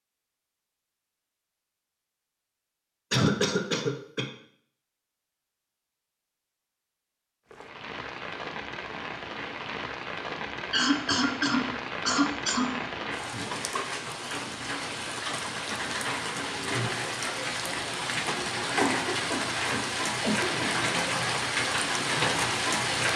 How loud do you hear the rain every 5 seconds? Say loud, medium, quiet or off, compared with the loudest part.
off, medium, medium, loud, loud.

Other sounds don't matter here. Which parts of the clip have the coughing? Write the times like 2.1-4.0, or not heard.
3.1-4.2, 10.7-12.8, 18.8-20.7.